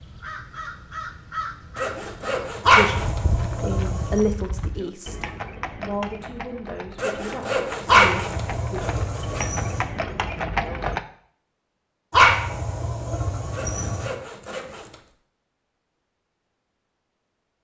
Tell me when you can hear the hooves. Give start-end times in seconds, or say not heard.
2.9-11.1.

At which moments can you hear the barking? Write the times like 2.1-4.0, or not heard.
2.6-4.2, 7.8-9.8, 12.1-14.1.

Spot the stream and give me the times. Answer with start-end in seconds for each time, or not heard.
not heard.